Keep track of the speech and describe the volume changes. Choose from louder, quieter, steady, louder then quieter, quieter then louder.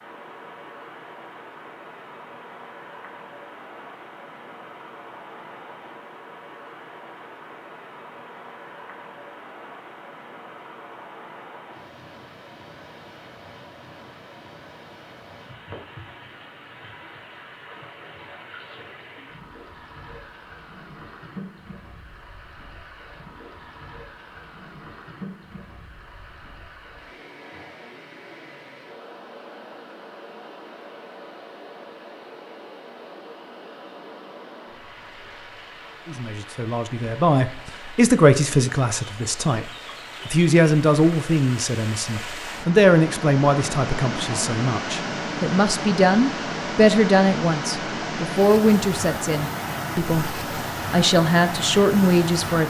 steady.